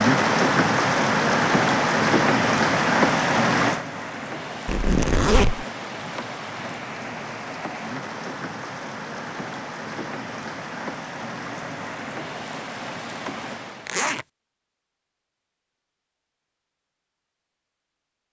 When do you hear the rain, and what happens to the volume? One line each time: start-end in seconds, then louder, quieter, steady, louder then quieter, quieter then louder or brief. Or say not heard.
0.0-14.1 quieter.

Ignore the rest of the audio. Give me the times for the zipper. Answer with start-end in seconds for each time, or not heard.
4.7-5.7, 13.8-14.2.